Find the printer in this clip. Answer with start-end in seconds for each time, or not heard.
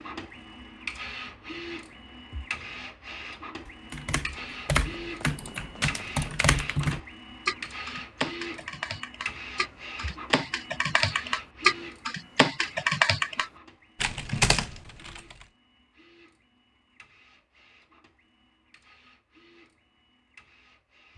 0.0-21.1.